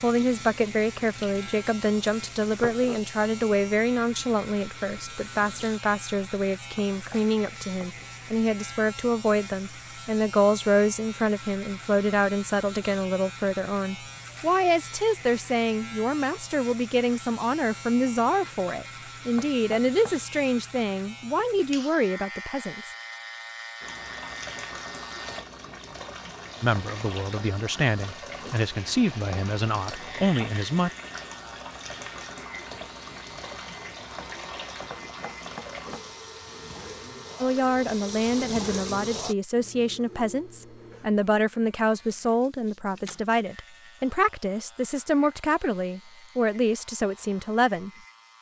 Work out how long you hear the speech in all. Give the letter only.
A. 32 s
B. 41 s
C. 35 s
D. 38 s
D.